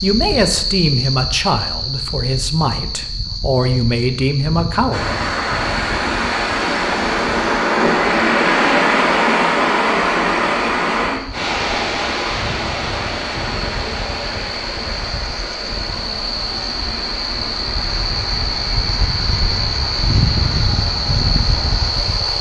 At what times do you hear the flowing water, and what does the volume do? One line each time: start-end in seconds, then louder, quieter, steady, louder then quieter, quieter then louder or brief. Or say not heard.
4.9-22.3 quieter.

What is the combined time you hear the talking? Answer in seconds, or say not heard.
5 s.